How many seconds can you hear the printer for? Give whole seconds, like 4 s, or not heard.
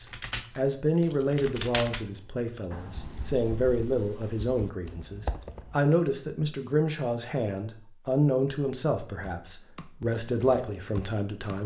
not heard.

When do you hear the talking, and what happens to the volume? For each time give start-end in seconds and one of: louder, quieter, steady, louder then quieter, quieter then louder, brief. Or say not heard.
0.0-11.6 steady.